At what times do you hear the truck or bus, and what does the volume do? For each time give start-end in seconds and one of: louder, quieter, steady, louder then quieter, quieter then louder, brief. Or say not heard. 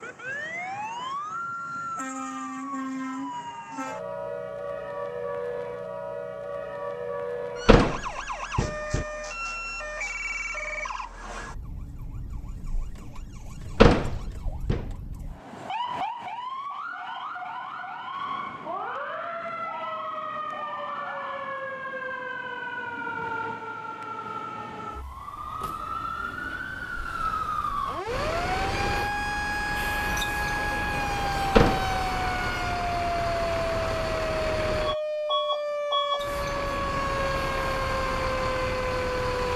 28.1-39.5 steady.